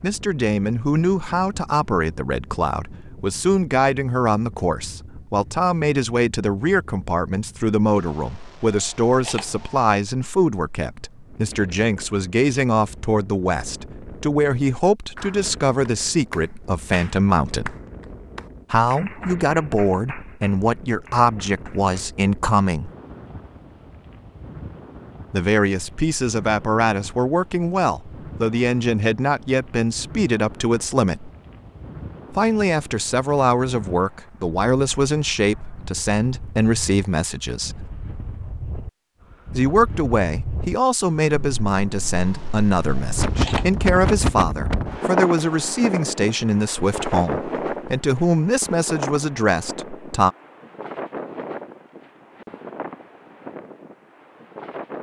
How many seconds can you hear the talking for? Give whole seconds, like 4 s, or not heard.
44 s.